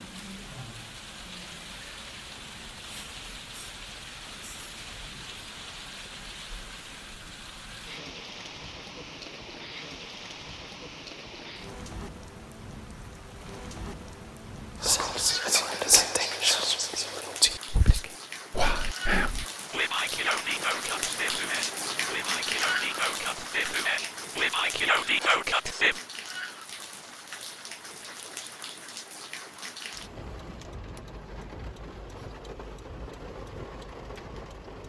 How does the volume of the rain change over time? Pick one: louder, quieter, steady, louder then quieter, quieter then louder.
louder then quieter.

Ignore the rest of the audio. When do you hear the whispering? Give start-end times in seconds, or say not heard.
14.8-26.0.